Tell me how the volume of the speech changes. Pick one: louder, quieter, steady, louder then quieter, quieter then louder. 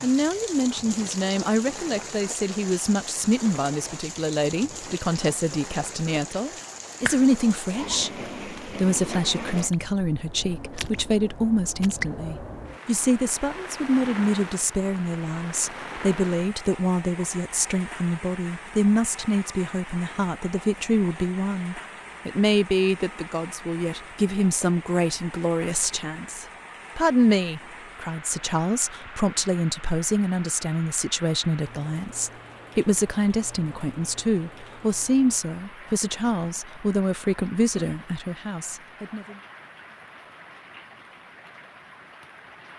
steady.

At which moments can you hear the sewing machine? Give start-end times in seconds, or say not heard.
not heard.